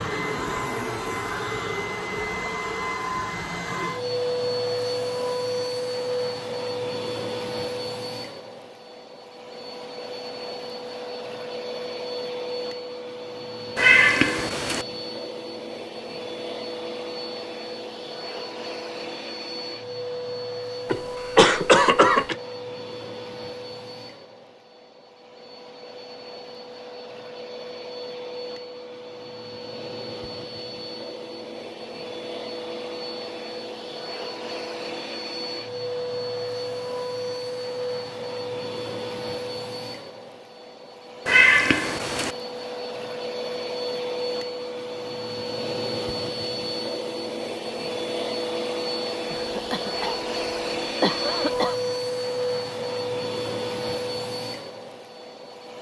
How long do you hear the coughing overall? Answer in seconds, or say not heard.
4 s.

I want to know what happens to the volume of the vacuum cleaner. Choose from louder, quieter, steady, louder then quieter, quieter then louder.
quieter then louder.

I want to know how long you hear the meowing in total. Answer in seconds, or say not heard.
2 s.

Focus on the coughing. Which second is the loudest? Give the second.
22 s.